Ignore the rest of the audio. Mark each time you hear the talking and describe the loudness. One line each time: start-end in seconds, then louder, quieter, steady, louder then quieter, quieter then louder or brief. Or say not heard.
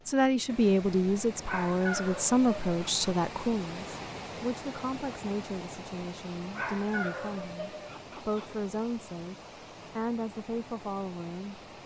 0.1-9.3 quieter
9.9-11.6 brief.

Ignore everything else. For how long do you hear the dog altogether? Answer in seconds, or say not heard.
4 s.